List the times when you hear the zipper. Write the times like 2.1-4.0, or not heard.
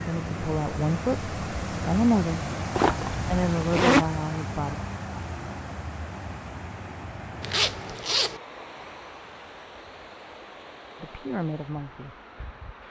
2.8-4.0, 7.4-8.4.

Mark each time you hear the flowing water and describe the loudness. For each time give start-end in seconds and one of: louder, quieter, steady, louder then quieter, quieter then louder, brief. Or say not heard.
0.0-12.8 quieter.